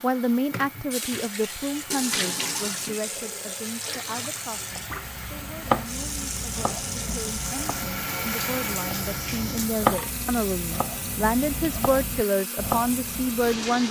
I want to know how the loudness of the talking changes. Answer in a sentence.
The volume of the talking goes down, then up.